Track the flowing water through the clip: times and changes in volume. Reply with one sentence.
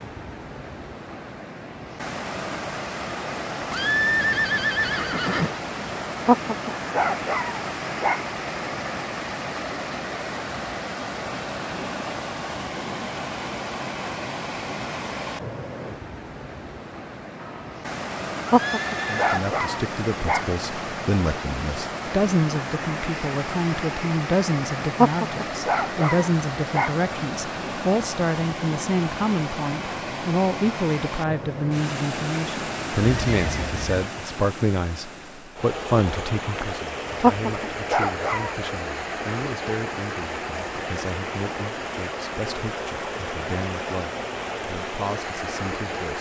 The flowing water can be heard from 0.0 to 46.1 s, at a steady volume.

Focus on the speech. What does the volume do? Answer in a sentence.
The loudness of the speech goes down.